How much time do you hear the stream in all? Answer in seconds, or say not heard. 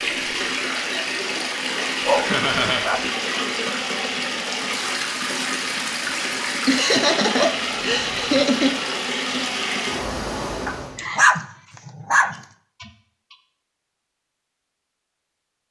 11 s.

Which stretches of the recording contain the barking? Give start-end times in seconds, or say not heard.
2.0-3.1, 7.3-8.4, 10.7-12.3.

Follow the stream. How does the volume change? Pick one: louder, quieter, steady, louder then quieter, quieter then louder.
steady.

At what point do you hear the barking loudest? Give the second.
11 s.